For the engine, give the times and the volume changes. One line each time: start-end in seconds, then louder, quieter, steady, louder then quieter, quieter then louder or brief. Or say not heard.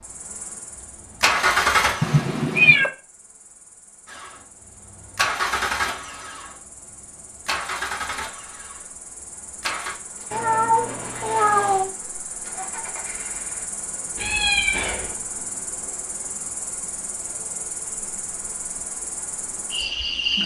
0.0-2.2 brief
4.0-13.7 quieter.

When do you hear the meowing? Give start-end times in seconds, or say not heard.
2.0-2.9, 10.3-11.9, 14.2-15.2.